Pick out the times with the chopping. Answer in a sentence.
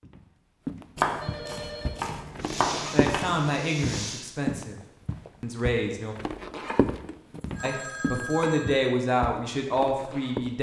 The chopping can be heard from 0.9 to 3.5 s and from 6.7 to 8.7 s.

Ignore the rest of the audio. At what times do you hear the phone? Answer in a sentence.
You can hear the phone from 1.2 to 2.0 s and from 7.0 to 8.9 s.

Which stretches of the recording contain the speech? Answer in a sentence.
The speech can be heard from 2.9 to 4.8 s, from 5.4 to 6.2 s and from 7.6 to 10.5 s.